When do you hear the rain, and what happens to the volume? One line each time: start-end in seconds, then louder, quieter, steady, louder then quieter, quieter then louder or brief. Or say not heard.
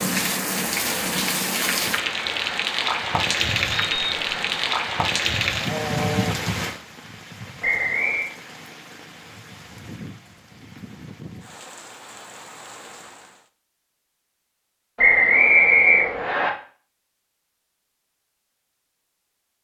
0.0-13.5 quieter.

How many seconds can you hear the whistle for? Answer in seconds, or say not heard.
3 s.